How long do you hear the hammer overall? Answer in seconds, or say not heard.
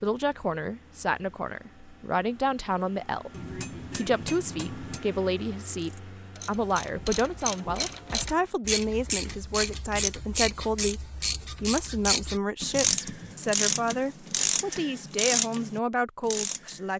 2 s.